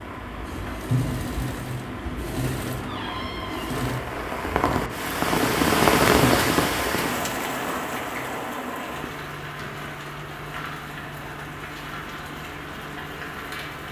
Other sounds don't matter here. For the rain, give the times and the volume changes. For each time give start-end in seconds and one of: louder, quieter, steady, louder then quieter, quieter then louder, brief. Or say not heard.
0.0-13.8 louder then quieter.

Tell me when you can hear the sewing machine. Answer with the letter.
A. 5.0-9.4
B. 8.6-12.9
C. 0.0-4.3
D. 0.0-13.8
C.